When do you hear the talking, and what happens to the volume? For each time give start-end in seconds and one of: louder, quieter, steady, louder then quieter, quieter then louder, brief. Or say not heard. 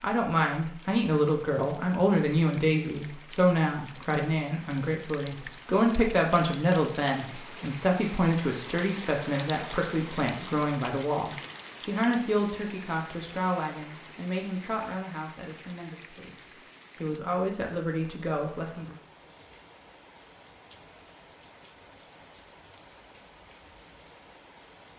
0.0-18.9 quieter.